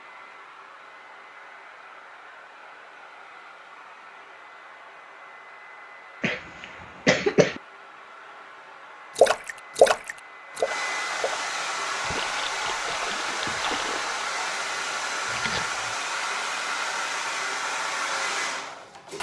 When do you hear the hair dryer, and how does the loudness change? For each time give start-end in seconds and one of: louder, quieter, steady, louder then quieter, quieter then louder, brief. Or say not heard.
0.0-19.1 louder.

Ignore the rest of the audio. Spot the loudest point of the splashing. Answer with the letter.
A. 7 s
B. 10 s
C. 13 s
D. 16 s
B.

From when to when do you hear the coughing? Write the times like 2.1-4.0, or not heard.
6.2-7.6.